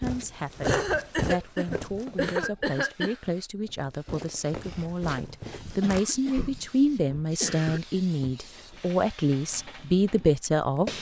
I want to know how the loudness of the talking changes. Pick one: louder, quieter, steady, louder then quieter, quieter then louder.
louder.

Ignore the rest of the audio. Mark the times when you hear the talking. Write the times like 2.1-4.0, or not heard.
0.0-10.9.